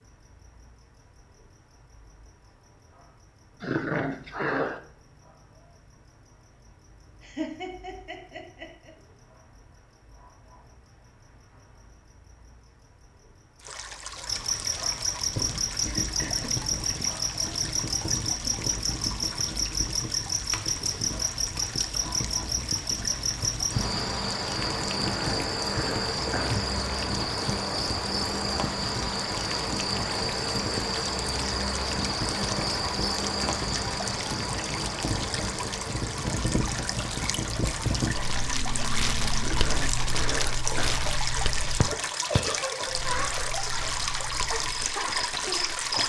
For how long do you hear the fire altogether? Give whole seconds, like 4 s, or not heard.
31 s.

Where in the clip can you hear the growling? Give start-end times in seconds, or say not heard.
3.6-4.8, 24.9-26.6, 39.4-41.0.